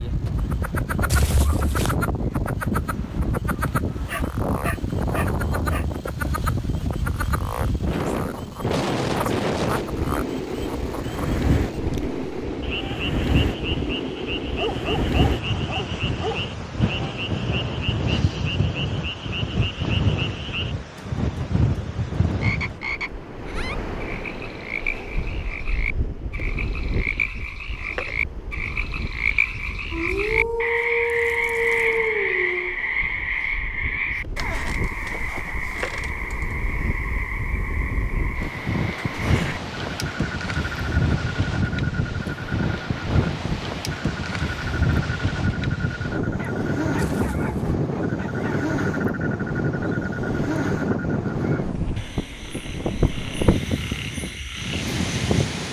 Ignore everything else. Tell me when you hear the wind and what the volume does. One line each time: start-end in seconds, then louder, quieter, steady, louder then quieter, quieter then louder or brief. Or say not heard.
0.0-55.6 quieter then louder.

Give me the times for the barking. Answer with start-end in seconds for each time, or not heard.
4.0-5.8, 14.6-16.4, 29.9-32.8, 46.3-48.5.